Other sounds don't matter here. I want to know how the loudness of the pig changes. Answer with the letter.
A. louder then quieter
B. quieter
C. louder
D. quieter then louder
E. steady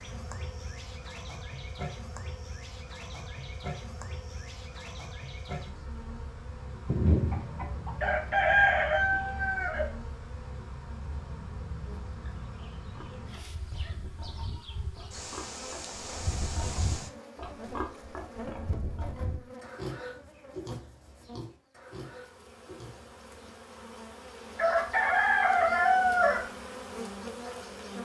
A.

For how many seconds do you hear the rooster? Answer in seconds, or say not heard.
5 s.